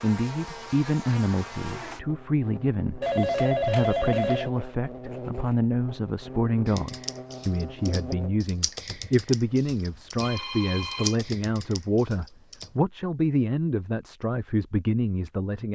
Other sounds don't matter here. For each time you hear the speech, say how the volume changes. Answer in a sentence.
You can hear the speech from 0.0 to 15.6 s, at a steady volume.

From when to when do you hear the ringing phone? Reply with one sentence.
You can hear the ringing phone from 3.0 to 4.5 s and from 10.2 to 11.2 s.